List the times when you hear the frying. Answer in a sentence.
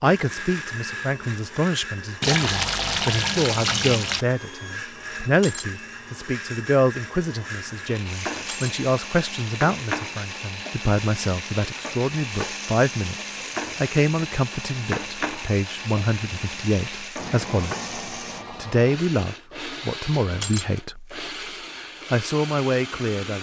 You can hear the frying from 8.1 to 18.4 s.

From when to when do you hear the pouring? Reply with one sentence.
You can hear the pouring from 2.2 to 4.2 s.